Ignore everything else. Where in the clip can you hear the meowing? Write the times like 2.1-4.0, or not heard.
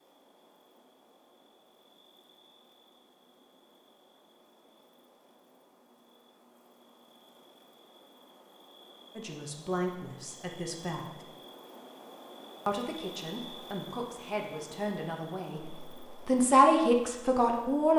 not heard.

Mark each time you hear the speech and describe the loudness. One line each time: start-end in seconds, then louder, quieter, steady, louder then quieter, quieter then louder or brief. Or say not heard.
9.2-11.2 brief
12.7-17.9 louder.